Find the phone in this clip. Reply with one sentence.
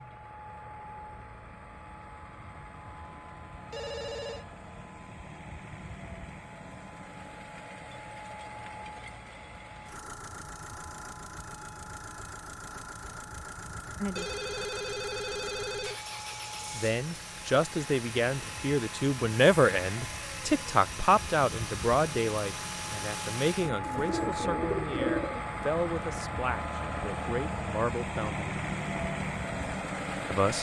You can hear the phone from 3.7 to 4.5 s, from 14.2 to 16.0 s and from 23.7 to 24.4 s.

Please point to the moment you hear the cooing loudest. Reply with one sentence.
The volume of the cooing peaks at 25 seconds.